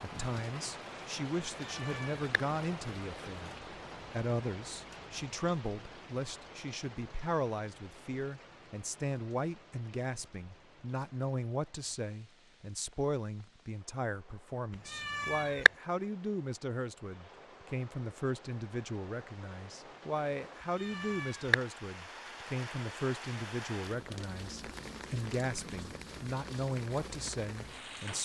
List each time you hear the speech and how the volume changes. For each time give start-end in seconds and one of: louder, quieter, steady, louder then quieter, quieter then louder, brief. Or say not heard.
0.0-28.2 steady.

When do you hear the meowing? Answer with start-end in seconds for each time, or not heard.
1.6-2.2, 14.9-15.7, 20.8-21.6.